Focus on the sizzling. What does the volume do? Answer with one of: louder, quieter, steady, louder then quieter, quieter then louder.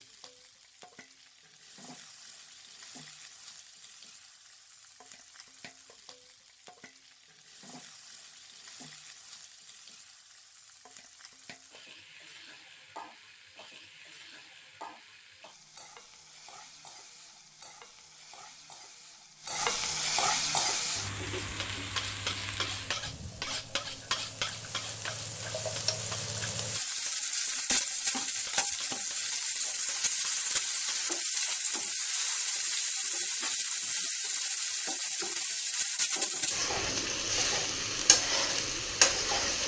louder.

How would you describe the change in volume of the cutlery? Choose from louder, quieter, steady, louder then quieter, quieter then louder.
quieter.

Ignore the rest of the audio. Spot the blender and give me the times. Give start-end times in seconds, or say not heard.
not heard.